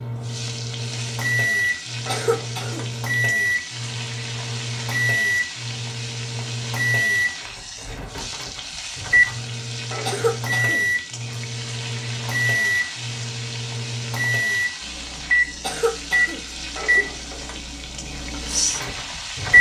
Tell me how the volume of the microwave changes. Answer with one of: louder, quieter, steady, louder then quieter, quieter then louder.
steady.